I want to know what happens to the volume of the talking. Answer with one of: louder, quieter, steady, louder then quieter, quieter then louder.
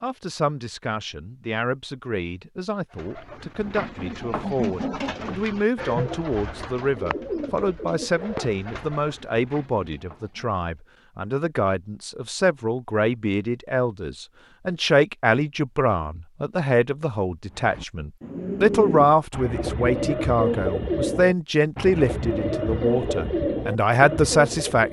louder.